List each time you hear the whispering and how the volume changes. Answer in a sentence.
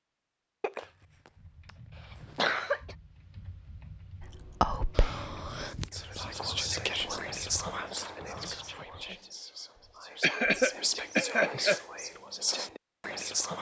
You can hear the whispering from 4.2 to 13.5 s, getting quieter then louder.